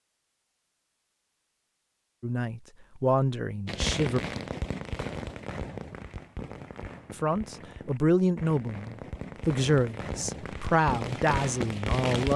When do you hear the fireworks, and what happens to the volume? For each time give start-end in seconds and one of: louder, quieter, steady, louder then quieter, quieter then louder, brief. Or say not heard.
3.6-12.3 quieter then louder.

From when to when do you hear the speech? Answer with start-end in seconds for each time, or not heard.
2.2-4.2, 7.1-12.3.